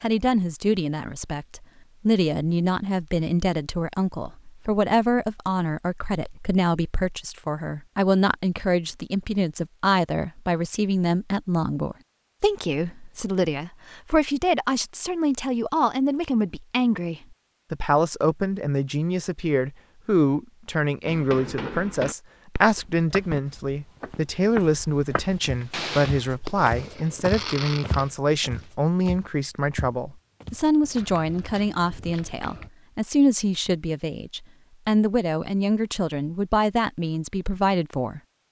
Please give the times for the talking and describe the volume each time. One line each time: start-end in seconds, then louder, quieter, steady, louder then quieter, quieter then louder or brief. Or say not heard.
0.0-38.2 steady.